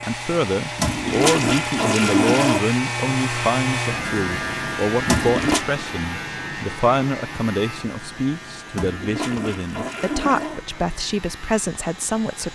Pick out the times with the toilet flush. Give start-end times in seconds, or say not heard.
0.8-2.6, 5.0-5.7, 8.7-10.7.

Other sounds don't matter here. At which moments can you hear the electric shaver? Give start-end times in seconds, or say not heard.
0.0-12.4.